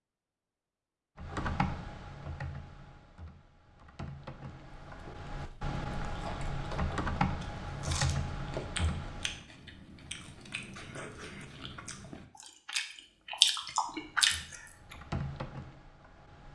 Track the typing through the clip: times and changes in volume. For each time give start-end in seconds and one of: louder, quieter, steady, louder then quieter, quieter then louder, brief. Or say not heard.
1.1-9.4 quieter then louder
13.8-16.5 brief.